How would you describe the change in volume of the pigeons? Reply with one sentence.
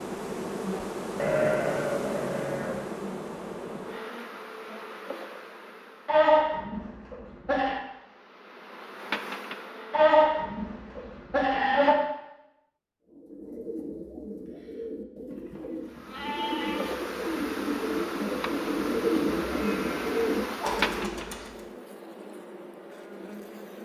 The volume of the pigeons goes up.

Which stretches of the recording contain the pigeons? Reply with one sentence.
You can hear the pigeons from 13.1 to 21.6 s.